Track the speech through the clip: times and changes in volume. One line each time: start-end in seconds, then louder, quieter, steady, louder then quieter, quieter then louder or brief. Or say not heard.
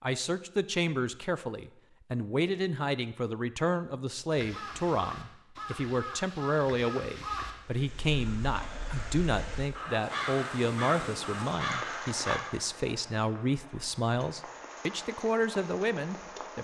0.0-16.5 steady.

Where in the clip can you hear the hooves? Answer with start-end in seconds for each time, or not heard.
not heard.